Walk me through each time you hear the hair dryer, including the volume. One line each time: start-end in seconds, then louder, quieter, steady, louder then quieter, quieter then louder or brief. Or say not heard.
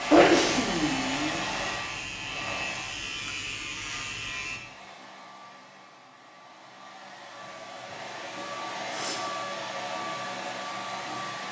0.0-3.0 brief
4.4-11.4 louder.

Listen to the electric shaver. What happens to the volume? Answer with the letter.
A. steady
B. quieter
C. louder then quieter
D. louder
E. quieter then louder
A.